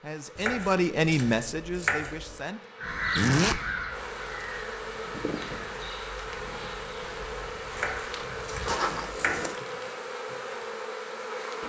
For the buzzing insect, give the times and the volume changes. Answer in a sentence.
You can hear the buzzing insect from 0.0 to 11.6 s, getting louder.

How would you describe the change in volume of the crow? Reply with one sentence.
The loudness of the crow goes down.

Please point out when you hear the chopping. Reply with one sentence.
The chopping can be heard from 0.3 to 2.4 s and from 7.7 to 9.4 s.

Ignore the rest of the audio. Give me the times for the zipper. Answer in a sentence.
The zipper can be heard from 3.1 to 3.6 s and from 8.7 to 9.6 s.